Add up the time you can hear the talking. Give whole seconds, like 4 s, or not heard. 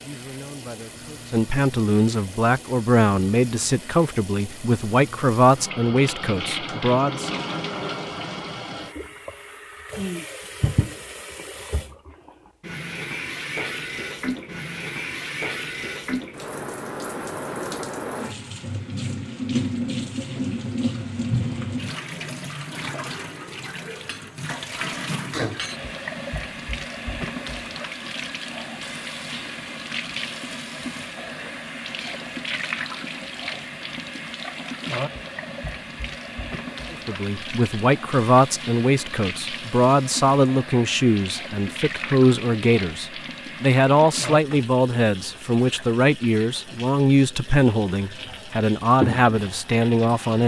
21 s.